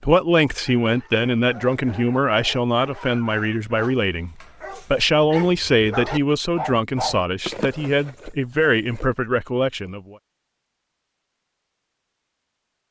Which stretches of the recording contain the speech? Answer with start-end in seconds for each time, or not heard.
0.0-10.2.